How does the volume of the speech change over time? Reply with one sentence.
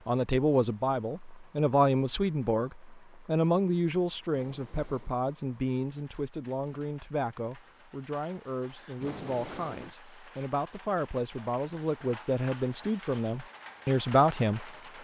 The volume of the speech goes down, then up.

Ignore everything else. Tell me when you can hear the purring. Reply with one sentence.
The purring can't be heard in this clip.